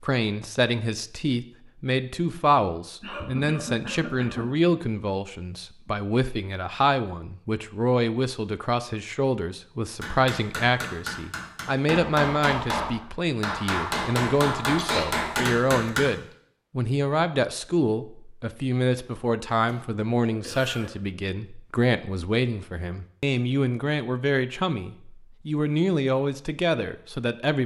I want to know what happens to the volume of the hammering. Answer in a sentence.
The volume of the hammering goes up.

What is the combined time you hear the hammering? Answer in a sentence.
The hammering can be heard for 6 seconds in total.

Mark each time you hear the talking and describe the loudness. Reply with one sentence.
You can hear the talking from 0.0 to 27.6 s, at a steady volume.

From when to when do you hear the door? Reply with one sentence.
You can't hear the door here.